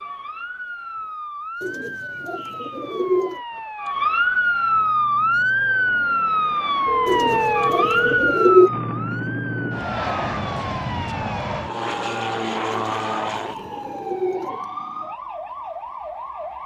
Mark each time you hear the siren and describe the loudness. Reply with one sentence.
You can hear the siren from 0.0 to 16.6 s, getting louder then quieter.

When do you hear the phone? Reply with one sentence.
The phone can be heard from 6.8 to 8.3 s.